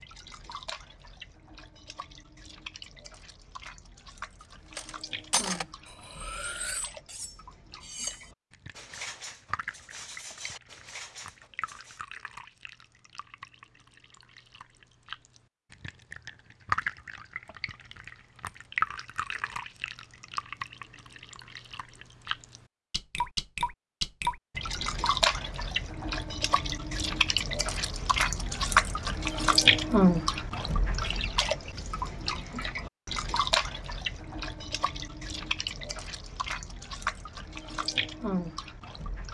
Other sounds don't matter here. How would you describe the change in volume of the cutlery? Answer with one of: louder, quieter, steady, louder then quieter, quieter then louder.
quieter.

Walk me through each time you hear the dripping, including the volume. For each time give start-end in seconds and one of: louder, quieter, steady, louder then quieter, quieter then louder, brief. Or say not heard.
0.0-39.2 louder then quieter.